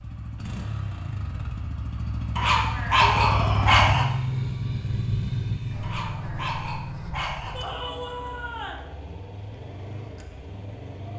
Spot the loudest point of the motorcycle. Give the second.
4 s.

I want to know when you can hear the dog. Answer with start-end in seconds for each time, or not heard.
2.4-4.0, 5.8-7.5.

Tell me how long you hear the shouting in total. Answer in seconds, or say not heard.
2 s.